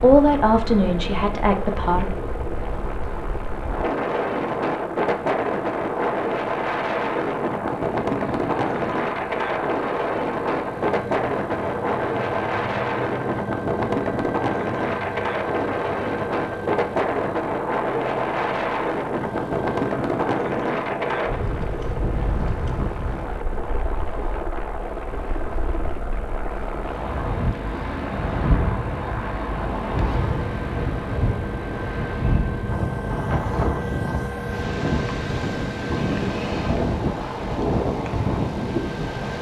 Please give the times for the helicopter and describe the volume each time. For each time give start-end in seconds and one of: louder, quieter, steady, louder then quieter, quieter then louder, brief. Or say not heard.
0.0-39.3 steady.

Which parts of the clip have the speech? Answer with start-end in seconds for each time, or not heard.
0.0-2.1.